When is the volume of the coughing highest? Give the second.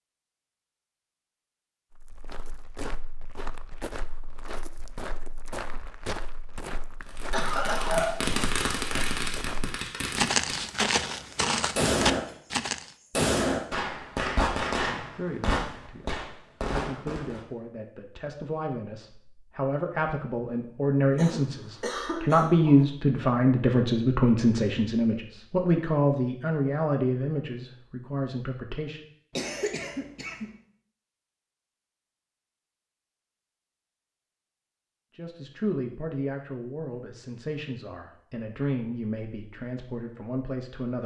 8 s.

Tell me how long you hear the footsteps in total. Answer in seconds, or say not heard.
11 s.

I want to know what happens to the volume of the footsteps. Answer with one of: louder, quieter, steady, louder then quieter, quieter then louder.
louder.